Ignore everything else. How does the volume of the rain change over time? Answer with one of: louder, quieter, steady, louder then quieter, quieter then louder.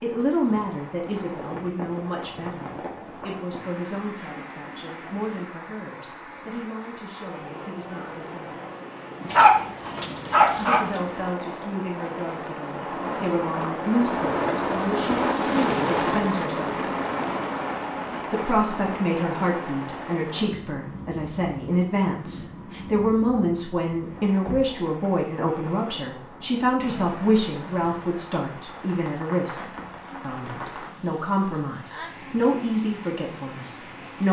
louder then quieter.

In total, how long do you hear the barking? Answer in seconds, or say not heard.
2 s.